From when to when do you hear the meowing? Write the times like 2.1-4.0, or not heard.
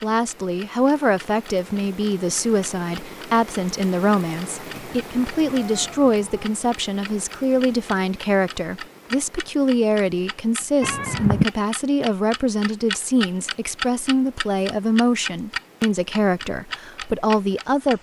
4.7-6.5, 10.8-11.4.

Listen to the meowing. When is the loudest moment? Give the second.
11 s.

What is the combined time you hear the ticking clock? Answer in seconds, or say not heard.
18 s.